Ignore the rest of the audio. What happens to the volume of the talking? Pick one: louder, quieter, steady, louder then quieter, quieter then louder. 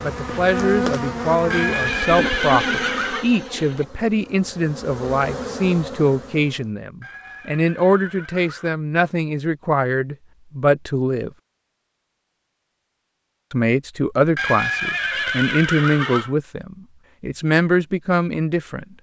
steady.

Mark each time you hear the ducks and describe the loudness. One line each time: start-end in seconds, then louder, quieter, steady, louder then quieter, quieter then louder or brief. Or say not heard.
not heard.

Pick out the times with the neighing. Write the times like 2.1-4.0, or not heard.
1.5-3.2, 7.0-8.8, 14.3-16.4.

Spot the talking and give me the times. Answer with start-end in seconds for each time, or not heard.
0.0-11.3, 13.5-18.9.